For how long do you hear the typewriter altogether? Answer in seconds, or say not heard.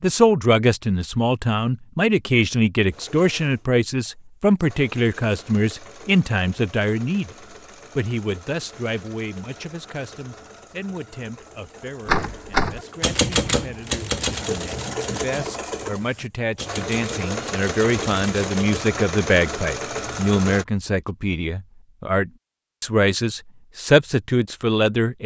7 s.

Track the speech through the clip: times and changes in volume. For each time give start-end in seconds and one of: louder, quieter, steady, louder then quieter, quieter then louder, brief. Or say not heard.
0.0-7.3 steady
8.0-25.2 quieter then louder.